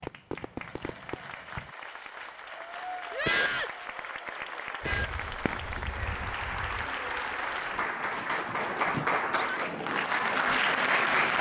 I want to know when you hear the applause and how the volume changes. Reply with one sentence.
The applause can be heard from 0.0 to 11.3 s, getting louder.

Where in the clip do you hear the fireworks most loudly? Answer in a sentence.
The volume of the fireworks peaks at 3 seconds.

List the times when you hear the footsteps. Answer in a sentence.
You can't hear the footsteps here.